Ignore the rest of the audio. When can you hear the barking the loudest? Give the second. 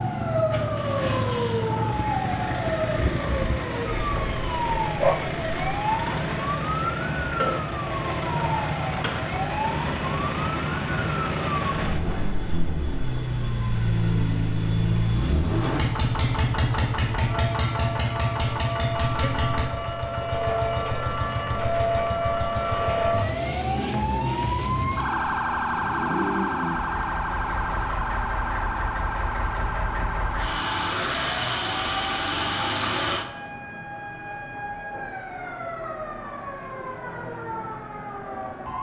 5 s.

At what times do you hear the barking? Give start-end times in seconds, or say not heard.
4.0-5.8.